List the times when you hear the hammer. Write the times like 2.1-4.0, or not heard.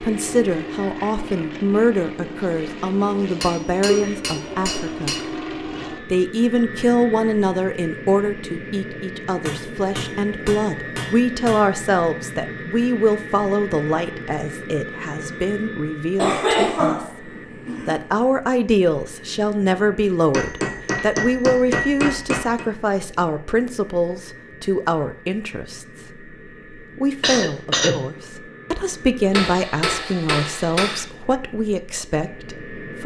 3.4-5.2, 9.4-11.7, 20.3-22.6, 29.3-31.1.